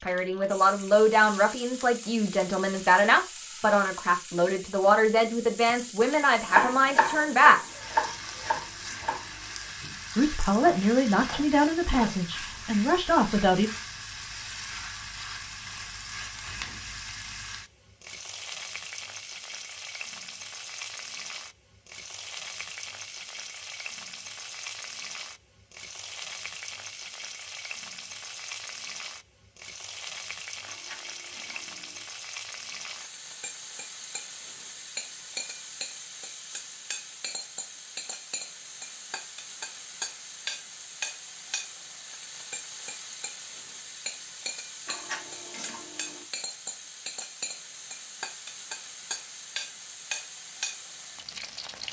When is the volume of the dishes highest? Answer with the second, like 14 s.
45 s.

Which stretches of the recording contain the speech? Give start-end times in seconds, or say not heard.
0.0-7.6, 10.2-13.7.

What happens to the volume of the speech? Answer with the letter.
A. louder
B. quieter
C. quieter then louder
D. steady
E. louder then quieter
D.